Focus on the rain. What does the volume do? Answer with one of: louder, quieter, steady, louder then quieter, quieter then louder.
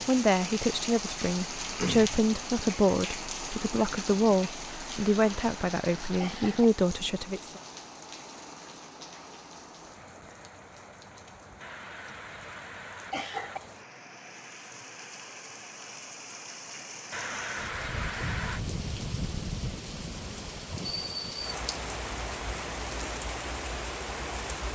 quieter then louder.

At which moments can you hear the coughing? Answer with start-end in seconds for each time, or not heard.
4.7-6.7, 11.6-13.6, 17.1-18.6.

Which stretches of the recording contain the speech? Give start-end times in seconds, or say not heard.
0.1-7.6.